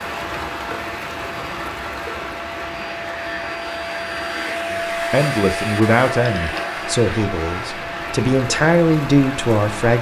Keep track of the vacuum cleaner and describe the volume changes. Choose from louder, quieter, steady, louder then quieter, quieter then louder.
louder then quieter.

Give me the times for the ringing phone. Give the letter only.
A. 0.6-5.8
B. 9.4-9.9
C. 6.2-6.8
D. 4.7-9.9
C.